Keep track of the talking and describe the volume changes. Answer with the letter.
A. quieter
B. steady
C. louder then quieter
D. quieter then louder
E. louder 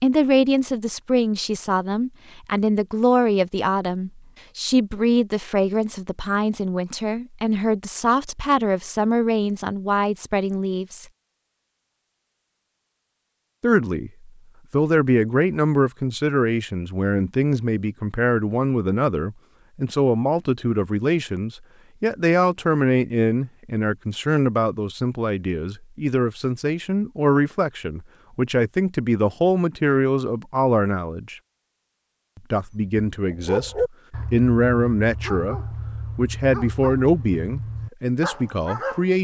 B.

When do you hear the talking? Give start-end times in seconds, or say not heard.
0.0-11.1, 13.6-31.4, 32.5-39.1.